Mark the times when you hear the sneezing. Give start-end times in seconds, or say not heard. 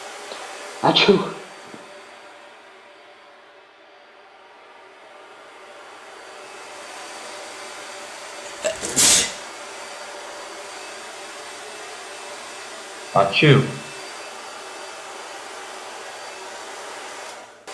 0.3-1.4, 8.6-9.3, 13.2-13.7.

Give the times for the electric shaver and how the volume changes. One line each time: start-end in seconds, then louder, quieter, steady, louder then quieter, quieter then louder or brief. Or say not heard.
not heard.